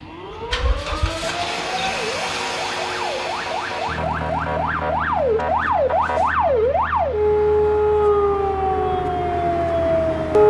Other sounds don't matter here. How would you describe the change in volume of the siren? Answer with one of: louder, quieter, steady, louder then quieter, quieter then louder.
louder.